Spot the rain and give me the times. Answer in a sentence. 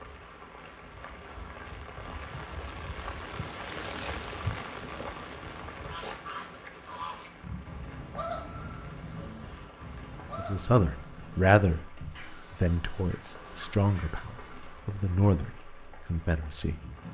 You can hear the rain from 0.0 to 17.0 s.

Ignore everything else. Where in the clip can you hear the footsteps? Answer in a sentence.
You can't hear the footsteps here.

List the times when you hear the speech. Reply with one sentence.
The speech can be heard from 10.3 to 16.8 s.